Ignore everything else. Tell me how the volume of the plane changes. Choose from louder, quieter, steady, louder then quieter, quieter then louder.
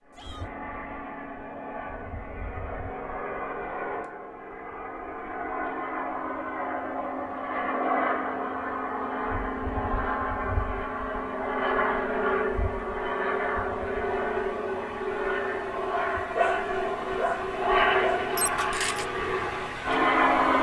louder.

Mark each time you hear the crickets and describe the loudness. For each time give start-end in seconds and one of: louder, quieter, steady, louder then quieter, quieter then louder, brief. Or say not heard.
not heard.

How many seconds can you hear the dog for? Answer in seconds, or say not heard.
3 s.